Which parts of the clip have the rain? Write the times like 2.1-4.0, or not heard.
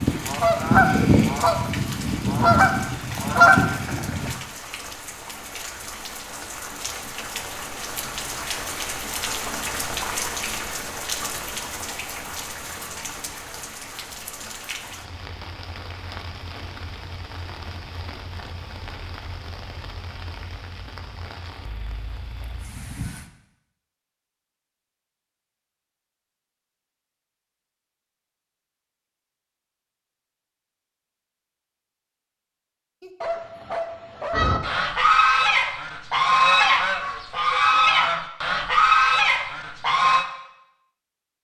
0.0-23.3.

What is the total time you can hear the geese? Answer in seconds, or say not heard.
10 s.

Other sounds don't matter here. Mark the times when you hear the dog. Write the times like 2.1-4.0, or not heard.
33.0-34.5.